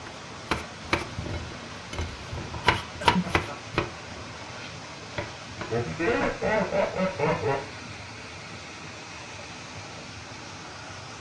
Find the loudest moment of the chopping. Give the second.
3 s.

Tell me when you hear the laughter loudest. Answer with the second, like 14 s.
7 s.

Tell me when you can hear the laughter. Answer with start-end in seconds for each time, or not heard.
3.0-3.5, 5.7-7.6.